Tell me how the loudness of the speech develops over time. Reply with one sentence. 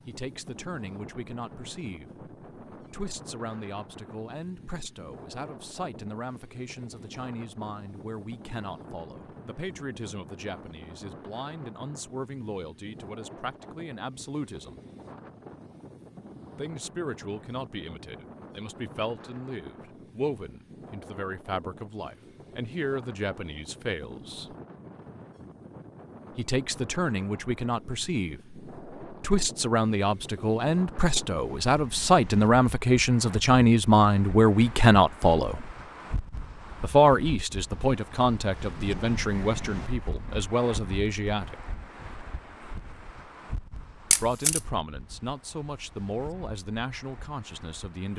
The loudness of the speech goes up, then down.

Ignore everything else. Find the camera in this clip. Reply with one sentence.
You can hear the camera from 44.1 to 44.6 s.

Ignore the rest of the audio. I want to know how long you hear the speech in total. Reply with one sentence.
You can hear the speech for 41 seconds altogether.